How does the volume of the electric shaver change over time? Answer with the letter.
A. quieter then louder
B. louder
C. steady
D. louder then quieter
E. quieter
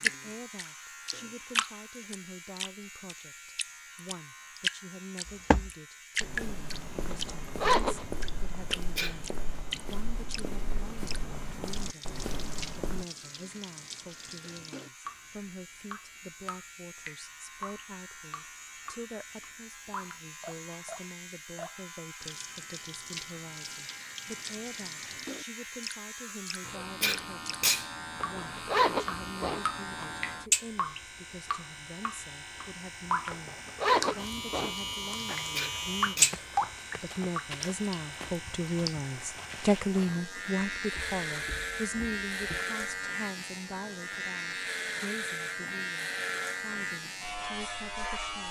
B.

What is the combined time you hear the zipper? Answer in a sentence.
You can hear the zipper for 5 seconds altogether.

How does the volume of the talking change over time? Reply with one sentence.
The volume of the talking goes up.